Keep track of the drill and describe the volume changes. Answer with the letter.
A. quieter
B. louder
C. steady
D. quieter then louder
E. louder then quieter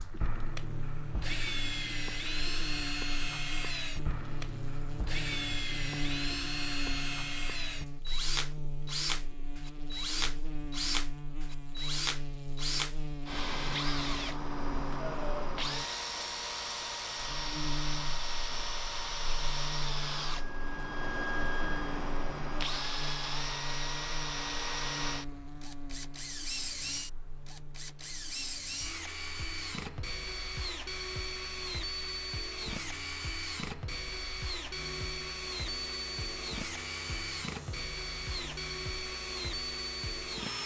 C.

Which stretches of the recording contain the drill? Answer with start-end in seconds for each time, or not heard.
0.0-40.6.